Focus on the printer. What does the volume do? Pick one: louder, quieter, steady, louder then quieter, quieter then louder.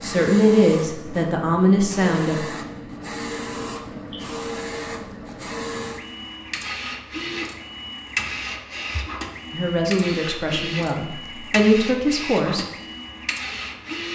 steady.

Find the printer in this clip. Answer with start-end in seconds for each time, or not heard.
0.0-14.1.